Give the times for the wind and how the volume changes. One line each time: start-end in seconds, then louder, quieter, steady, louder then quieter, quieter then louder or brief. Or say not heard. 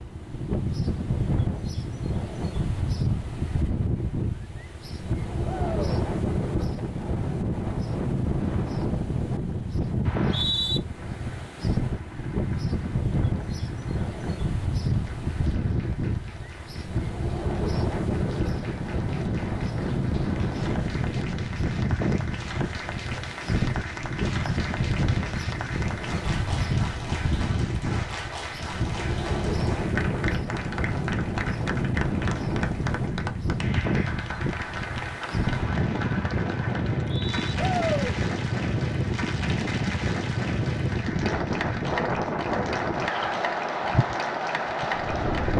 0.0-45.5 steady.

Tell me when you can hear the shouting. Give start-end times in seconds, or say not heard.
5.4-6.0, 37.5-38.1.